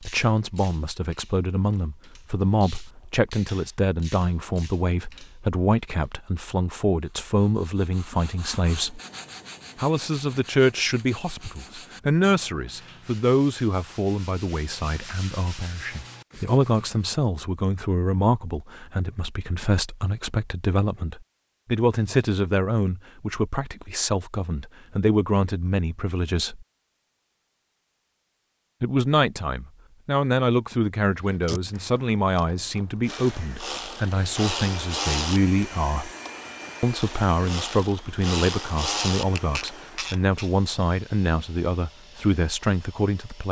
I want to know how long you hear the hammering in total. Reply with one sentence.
You can't hear the hammering here.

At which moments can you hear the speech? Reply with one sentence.
You can hear the speech from 0.0 to 9.0 s, from 9.8 to 26.6 s, from 28.8 to 36.1 s and from 36.8 to 43.4 s.